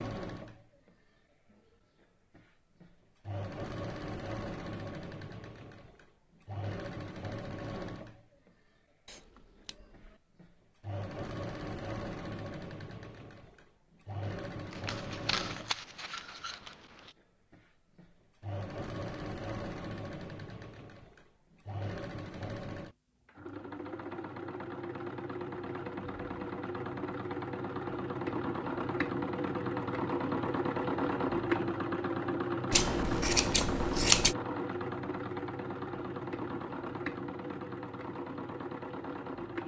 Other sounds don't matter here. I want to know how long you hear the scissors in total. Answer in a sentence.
The scissors can be heard for 5 seconds in total.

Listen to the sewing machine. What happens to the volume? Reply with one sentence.
The volume of the sewing machine goes up.